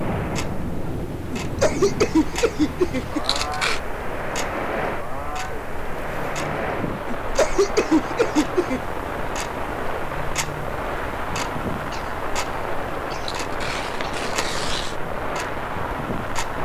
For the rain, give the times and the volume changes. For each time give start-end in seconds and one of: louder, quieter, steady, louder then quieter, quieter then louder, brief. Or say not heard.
0.0-16.6 steady.